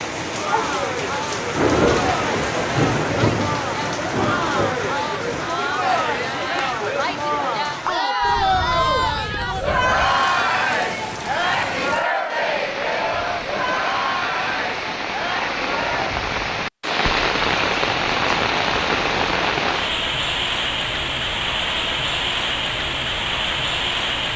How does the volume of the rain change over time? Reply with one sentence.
The loudness of the rain goes down, then up.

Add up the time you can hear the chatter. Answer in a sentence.
You can hear the chatter for 16 seconds altogether.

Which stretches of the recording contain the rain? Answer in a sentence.
You can hear the rain from 0.0 to 24.3 s.